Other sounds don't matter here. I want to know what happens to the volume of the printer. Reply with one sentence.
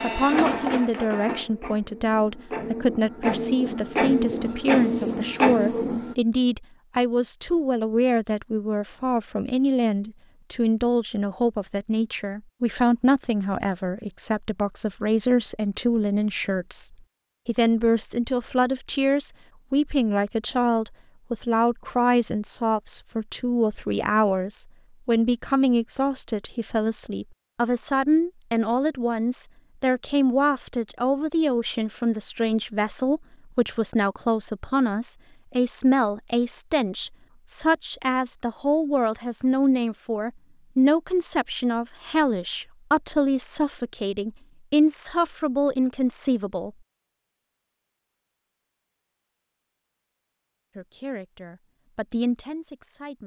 The volume of the printer goes down, then up.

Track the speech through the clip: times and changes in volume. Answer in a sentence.
You can hear the speech from 0.0 to 46.7 s, at a steady volume; and briefly from 50.8 to 53.2 s.